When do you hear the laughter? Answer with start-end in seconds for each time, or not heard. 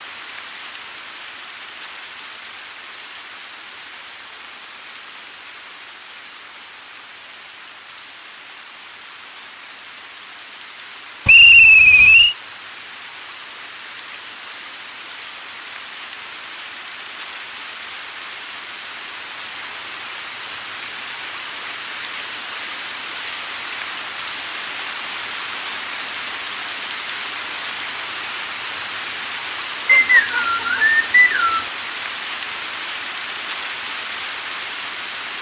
not heard.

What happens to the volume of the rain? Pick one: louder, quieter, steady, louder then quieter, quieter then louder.
louder.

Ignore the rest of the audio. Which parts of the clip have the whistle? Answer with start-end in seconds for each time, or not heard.
11.2-12.3, 29.9-31.6.